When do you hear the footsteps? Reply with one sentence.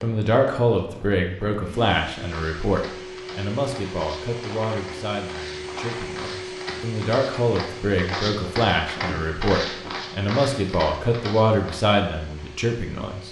The footsteps can be heard from 2.2 to 11.8 s.